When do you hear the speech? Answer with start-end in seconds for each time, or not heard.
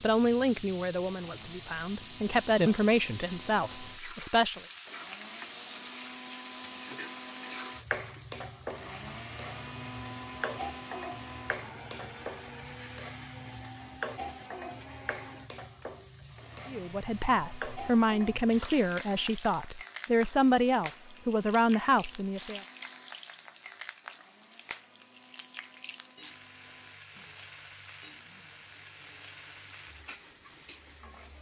0.0-4.6, 16.6-22.6.